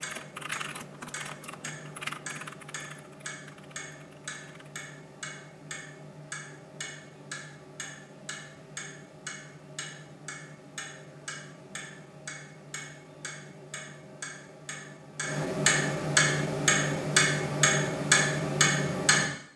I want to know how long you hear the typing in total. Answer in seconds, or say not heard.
5 s.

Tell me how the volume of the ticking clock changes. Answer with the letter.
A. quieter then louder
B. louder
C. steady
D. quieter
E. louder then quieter
B.